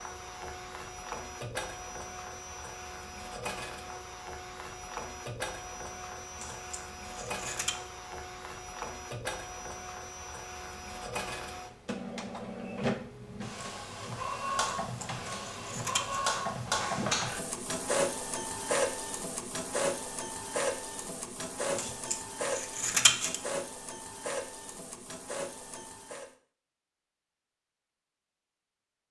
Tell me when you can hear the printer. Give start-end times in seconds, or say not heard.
0.0-26.3.